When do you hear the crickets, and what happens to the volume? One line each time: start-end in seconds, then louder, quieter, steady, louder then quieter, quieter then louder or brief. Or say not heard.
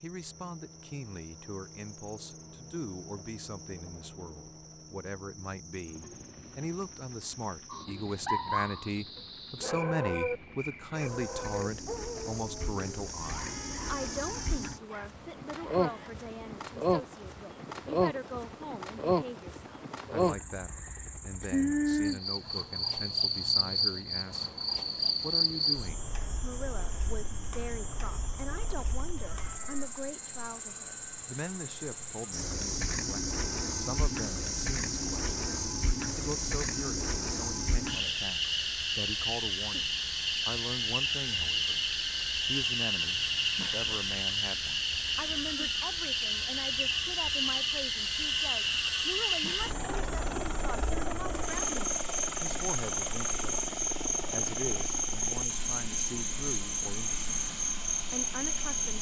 0.0-58.9 louder.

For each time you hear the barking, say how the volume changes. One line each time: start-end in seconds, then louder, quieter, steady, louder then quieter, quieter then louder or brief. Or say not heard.
7.7-16.1 quieter.